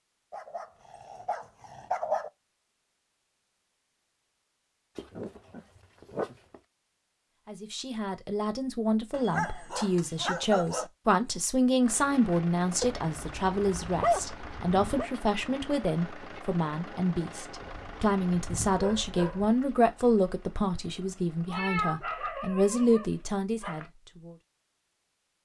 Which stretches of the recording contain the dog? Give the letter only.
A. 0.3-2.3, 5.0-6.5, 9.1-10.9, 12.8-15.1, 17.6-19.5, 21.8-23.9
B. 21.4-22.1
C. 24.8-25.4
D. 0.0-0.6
A.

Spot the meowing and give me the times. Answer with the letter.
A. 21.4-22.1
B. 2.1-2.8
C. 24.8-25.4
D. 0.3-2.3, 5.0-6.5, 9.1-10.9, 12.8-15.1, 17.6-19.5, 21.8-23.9
A.